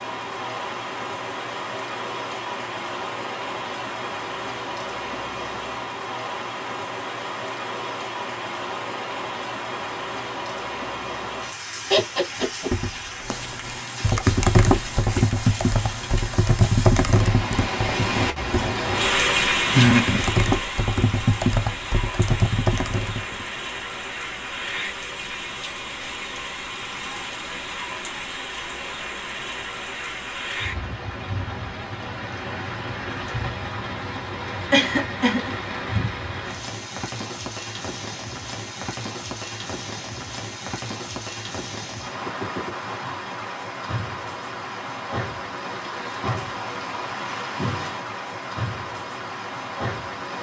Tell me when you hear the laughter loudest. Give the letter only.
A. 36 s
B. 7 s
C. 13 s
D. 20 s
D.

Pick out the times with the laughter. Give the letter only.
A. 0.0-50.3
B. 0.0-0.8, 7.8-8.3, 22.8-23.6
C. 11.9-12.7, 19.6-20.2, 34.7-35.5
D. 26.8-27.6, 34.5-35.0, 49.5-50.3
C.